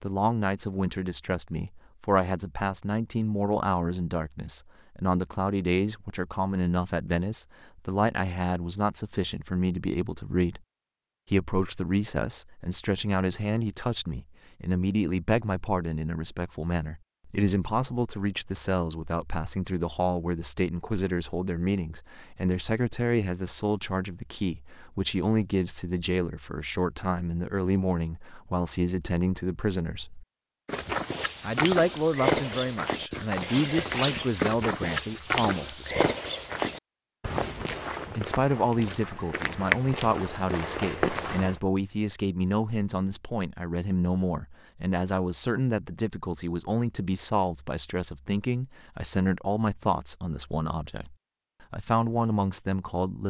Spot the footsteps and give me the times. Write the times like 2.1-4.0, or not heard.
30.6-41.6.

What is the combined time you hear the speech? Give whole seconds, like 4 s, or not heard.
49 s.